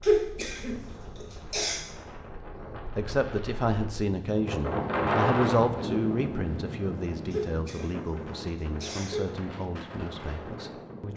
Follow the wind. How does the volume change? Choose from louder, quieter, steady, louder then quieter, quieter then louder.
louder then quieter.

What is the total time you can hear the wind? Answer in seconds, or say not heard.
11 s.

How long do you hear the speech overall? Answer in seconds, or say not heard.
8 s.